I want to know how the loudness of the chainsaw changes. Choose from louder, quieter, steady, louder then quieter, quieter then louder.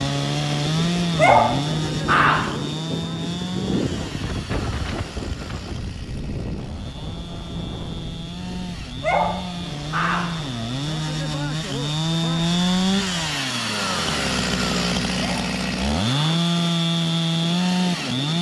quieter then louder.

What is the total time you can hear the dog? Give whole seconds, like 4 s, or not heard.
4 s.